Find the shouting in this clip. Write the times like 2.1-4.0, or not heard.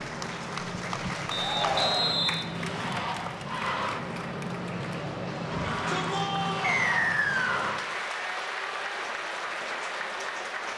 1.4-2.3, 5.5-6.8.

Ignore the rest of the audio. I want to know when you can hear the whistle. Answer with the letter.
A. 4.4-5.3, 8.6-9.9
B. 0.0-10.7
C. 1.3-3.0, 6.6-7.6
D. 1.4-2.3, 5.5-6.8
C.